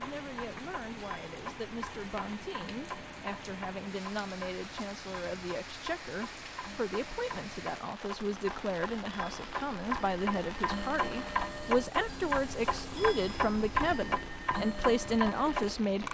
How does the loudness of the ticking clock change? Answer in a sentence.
The volume of the ticking clock goes up.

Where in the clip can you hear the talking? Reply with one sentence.
The talking can be heard from 0.0 to 16.0 s.